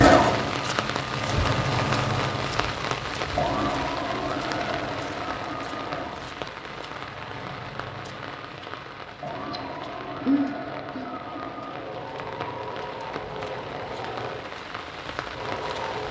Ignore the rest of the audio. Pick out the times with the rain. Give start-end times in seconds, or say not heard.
0.0-16.0.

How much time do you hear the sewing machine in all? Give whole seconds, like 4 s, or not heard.
16 s.